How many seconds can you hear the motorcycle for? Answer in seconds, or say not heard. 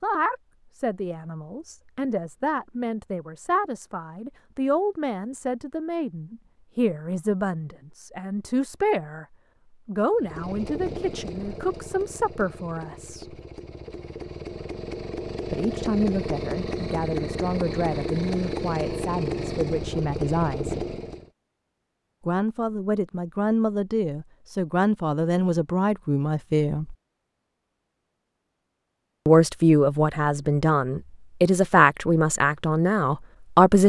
11 s.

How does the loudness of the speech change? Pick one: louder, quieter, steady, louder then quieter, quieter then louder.
louder.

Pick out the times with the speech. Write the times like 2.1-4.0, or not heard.
0.0-9.2, 9.8-13.3, 15.4-20.8, 22.2-26.9, 29.2-33.8.